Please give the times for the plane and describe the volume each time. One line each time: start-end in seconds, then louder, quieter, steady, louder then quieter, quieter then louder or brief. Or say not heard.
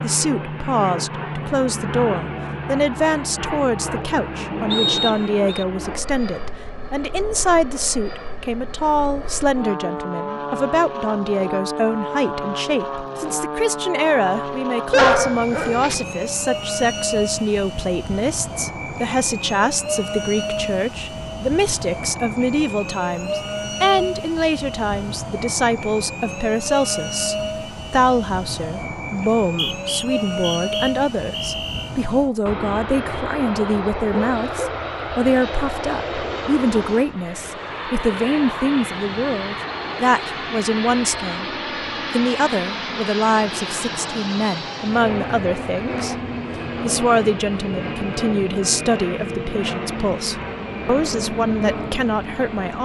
0.0-52.7 steady.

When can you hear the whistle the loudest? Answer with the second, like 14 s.
5 s.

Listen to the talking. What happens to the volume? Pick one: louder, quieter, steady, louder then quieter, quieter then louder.
steady.